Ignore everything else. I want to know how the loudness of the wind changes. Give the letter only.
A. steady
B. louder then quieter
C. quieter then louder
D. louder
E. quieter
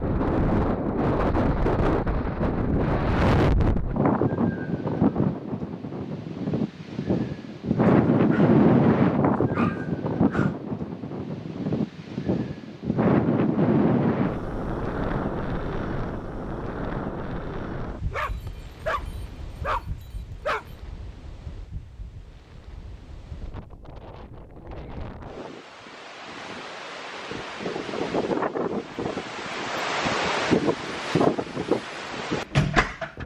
C.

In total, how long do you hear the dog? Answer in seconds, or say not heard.
4 s.